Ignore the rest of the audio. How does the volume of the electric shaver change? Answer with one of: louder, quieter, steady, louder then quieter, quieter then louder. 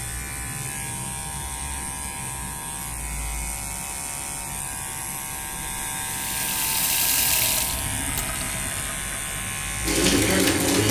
steady.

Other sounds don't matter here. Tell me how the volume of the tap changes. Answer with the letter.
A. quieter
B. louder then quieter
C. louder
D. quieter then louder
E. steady
D.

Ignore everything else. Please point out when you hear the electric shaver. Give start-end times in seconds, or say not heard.
0.0-10.8.